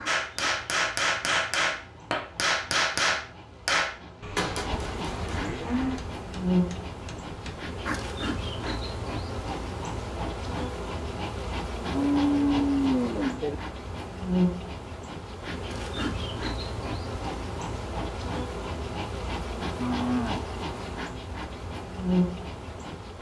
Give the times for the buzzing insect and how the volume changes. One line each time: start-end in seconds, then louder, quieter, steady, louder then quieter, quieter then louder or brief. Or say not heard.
0.0-23.1 louder.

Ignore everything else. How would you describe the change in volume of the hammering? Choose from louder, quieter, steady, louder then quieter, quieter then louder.
quieter.